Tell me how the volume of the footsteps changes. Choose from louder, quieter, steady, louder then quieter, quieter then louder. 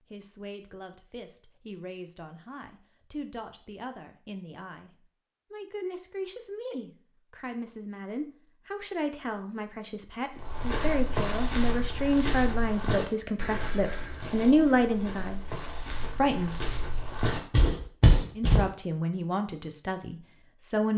quieter then louder.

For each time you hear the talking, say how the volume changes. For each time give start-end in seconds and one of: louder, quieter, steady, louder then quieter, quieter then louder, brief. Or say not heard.
0.1-15.5 louder
16.1-16.6 brief
18.4-20.9 brief.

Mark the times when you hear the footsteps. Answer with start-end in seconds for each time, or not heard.
10.3-18.6.